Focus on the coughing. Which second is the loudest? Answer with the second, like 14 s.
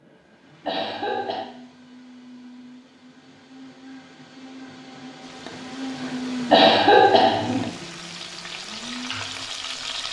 7 s.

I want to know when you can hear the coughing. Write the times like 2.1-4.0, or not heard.
0.7-1.4, 6.5-7.7.